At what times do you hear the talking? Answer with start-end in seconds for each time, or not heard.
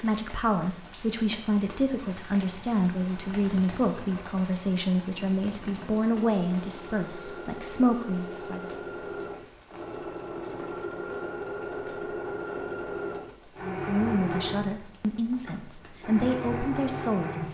0.0-8.7, 13.6-17.4.